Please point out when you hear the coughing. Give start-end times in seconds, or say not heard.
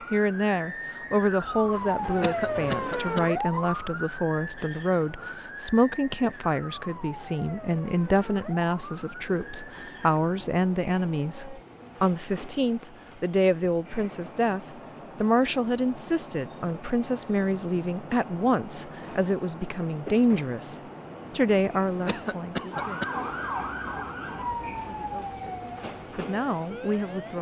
2.2-3.2, 22.1-23.1.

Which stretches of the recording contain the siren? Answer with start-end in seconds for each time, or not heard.
0.0-11.7, 22.7-27.3.